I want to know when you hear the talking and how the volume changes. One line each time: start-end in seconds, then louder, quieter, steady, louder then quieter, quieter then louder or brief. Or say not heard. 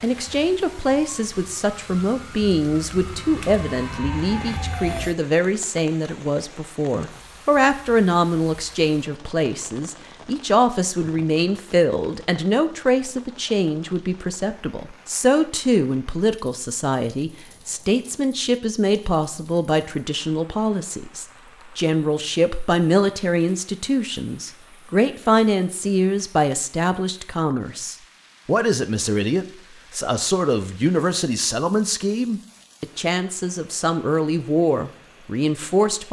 0.0-36.0 steady.